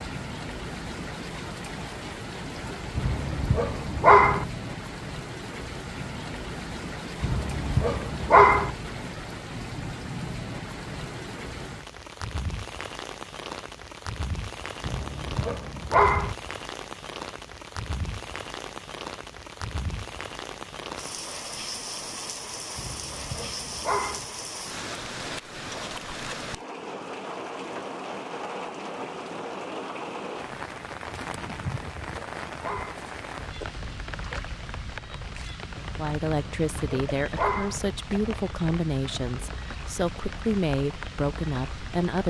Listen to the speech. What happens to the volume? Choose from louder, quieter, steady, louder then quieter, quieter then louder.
steady.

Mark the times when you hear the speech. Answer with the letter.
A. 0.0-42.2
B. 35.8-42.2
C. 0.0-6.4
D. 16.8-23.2
B.